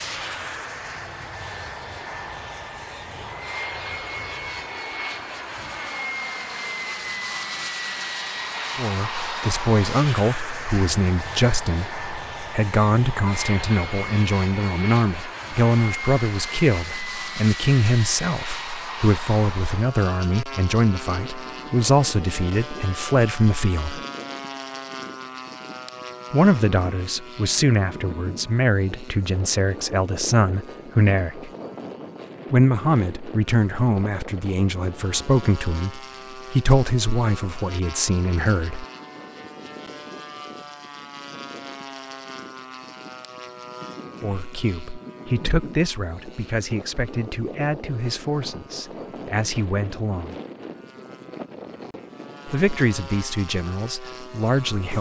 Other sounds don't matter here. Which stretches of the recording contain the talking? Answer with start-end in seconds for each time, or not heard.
8.8-24.0, 26.3-31.5, 32.5-38.9, 44.2-50.4, 52.5-54.9.